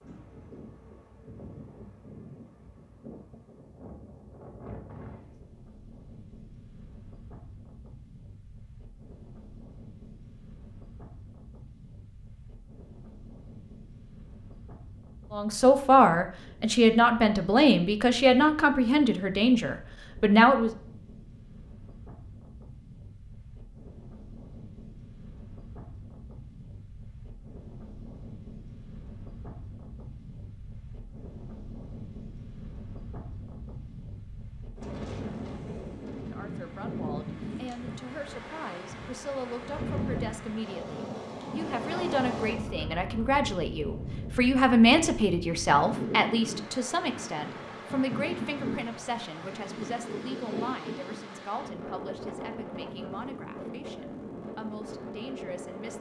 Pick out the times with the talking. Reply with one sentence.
You can hear the talking from 15.3 to 20.7 s and from 36.2 to 55.9 s.